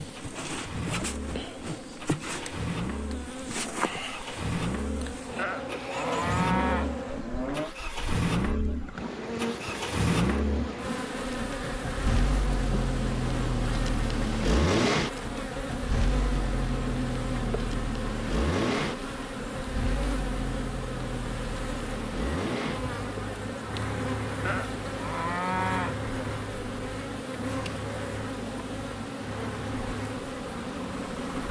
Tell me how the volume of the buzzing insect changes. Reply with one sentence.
The loudness of the buzzing insect stays about the same.